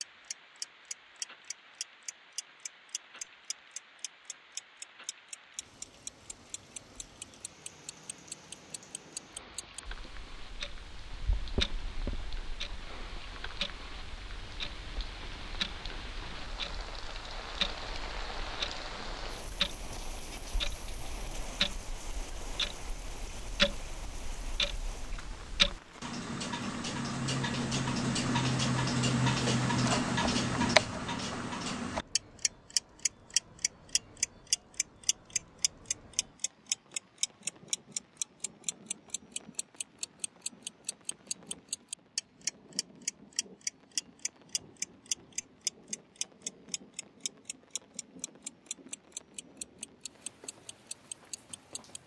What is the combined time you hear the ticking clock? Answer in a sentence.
You can hear the ticking clock for 52 seconds altogether.